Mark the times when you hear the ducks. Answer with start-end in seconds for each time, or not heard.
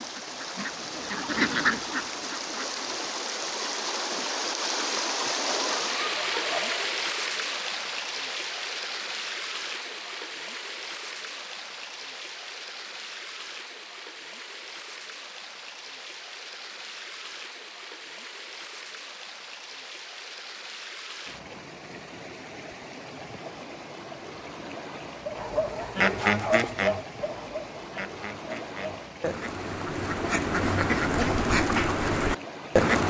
0.0-3.2, 25.2-33.0.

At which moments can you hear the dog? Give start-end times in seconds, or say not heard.
5.4-7.0.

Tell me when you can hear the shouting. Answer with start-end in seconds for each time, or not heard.
not heard.